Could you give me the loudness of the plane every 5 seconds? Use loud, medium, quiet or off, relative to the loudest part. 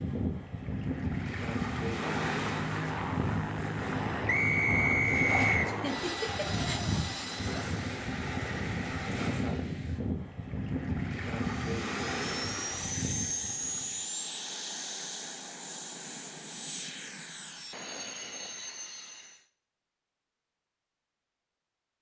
loud, loud, loud, medium, off.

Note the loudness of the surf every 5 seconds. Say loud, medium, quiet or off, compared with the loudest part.
loud, loud, loud, off, off.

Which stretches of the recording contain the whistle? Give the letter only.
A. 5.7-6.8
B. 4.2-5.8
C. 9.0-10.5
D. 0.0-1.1
B.